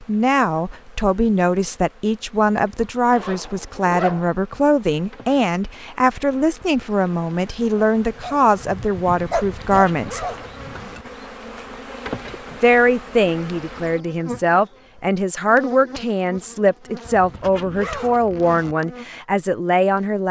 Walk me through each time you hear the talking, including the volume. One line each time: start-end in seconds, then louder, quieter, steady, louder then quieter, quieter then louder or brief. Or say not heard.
0.0-10.2 steady
12.5-20.2 steady.